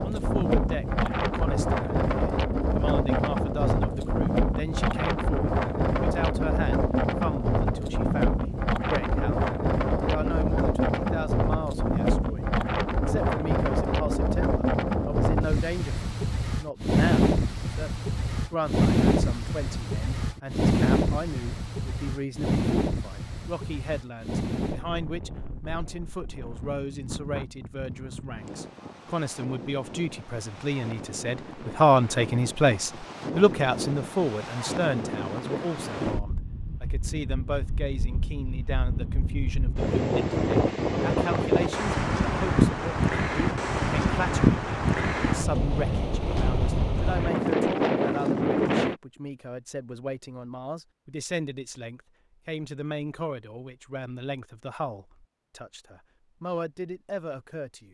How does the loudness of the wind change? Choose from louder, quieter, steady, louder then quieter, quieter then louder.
quieter then louder.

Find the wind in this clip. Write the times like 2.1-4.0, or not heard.
0.0-49.0.